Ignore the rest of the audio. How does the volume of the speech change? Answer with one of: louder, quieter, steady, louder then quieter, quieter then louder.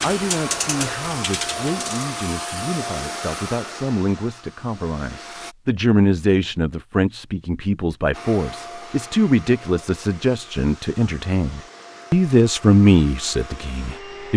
louder.